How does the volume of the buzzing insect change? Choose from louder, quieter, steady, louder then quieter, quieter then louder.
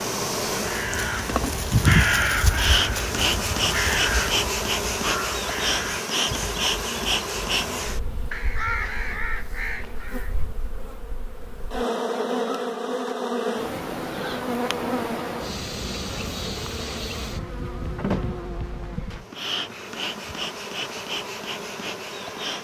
quieter.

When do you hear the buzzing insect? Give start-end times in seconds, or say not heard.
0.0-22.6.